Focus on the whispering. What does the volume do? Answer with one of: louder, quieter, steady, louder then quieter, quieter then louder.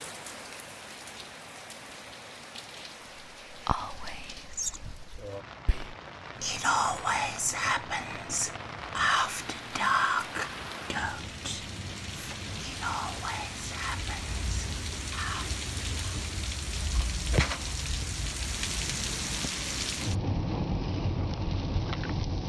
louder then quieter.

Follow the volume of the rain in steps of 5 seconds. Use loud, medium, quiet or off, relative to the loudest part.
quiet, medium, medium, loud, loud.